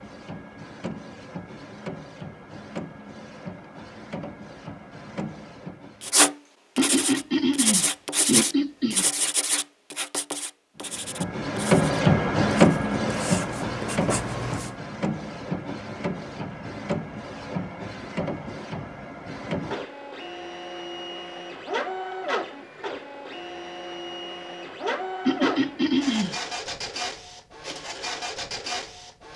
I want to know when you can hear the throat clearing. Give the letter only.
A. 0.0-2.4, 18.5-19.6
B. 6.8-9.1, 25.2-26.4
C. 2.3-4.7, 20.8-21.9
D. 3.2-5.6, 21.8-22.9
B.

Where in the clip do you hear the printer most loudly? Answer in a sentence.
The loudest moment of the printer is at 12 seconds.